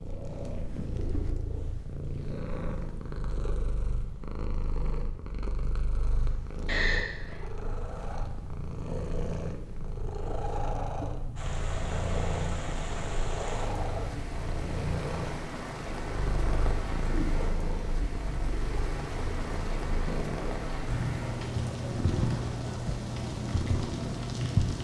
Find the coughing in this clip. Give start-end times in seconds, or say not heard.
6.7-7.4.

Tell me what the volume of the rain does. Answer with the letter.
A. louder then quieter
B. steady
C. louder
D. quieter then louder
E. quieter
B.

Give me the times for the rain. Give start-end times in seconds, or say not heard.
11.3-24.8.